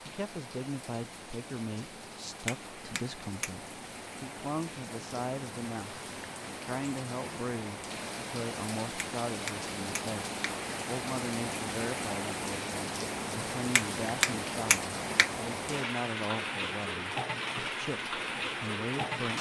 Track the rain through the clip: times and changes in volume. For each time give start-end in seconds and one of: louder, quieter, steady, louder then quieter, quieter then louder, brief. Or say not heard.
0.0-19.3 louder.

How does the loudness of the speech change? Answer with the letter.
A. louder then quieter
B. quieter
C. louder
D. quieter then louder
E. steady
E.